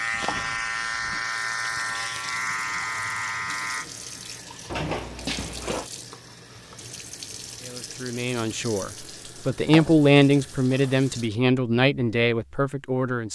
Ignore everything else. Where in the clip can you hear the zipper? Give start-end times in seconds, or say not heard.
not heard.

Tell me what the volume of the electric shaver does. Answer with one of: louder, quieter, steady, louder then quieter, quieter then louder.
steady.